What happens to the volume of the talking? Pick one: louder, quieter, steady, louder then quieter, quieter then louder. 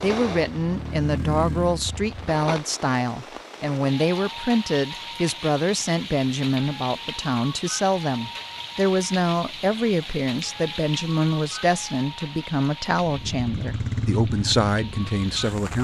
steady.